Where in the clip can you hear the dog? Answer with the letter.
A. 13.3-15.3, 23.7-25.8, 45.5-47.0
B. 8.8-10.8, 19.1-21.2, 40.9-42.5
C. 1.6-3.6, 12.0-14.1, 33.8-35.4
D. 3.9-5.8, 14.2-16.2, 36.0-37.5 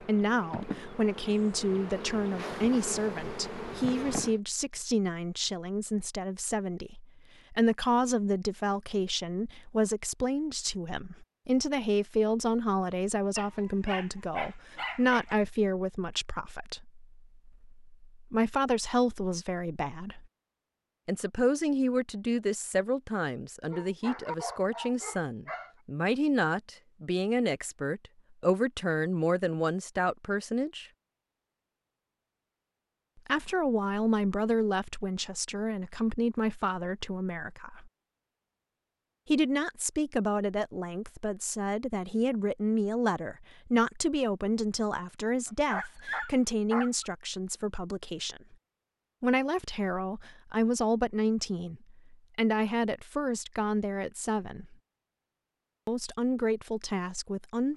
A.